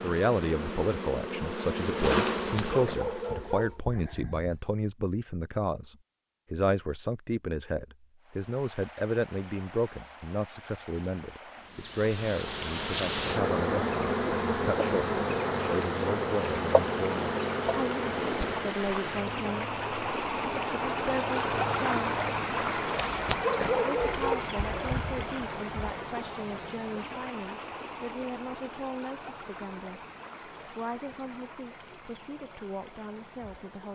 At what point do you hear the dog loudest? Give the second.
24 s.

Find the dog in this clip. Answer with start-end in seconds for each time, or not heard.
2.2-4.6, 23.1-25.3.